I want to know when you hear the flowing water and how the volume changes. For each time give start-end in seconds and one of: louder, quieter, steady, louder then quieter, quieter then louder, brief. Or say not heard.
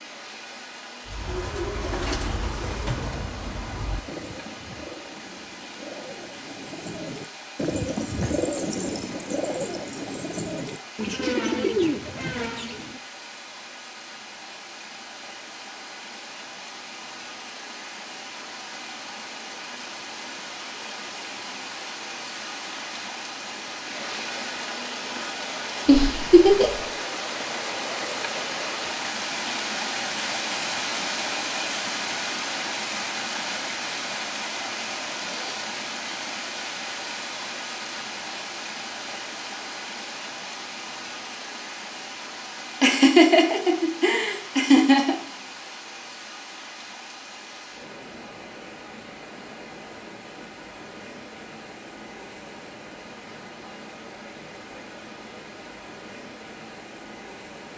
0.0-57.7 louder then quieter.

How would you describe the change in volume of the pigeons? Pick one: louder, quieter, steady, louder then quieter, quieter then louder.
quieter then louder.